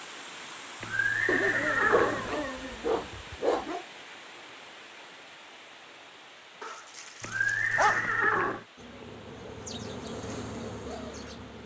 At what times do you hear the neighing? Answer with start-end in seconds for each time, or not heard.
0.8-2.4, 7.2-8.7.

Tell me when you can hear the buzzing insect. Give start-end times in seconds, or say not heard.
8.8-11.6.